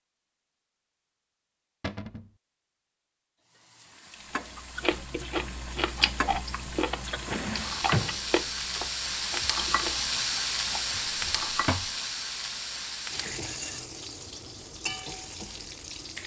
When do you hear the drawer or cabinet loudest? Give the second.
8 s.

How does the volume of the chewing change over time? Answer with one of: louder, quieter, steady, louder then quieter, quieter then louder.
quieter.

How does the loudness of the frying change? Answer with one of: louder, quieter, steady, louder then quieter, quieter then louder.
louder then quieter.